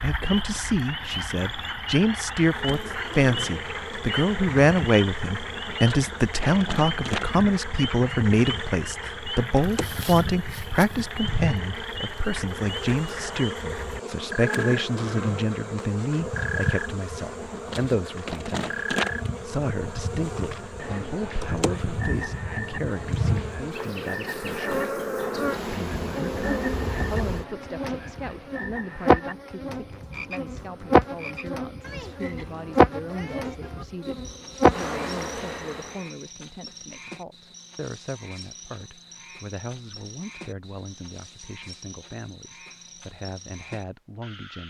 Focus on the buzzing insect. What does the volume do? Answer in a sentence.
The volume of the buzzing insect goes up.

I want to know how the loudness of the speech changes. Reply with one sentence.
The loudness of the speech goes down.